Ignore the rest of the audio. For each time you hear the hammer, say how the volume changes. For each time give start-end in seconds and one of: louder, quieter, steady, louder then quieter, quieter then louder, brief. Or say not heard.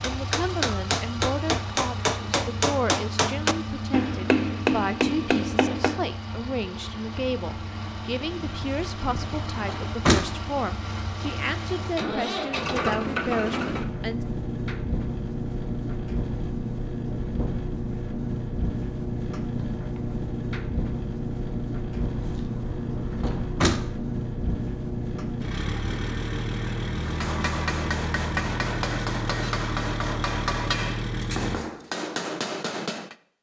0.0-6.0 steady
27.0-33.1 steady.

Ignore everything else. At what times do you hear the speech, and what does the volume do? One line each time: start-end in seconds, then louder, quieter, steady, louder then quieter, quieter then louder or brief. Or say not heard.
0.0-14.2 steady.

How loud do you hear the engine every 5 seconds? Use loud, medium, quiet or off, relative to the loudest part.
medium, medium, loud, loud, loud, loud, loud.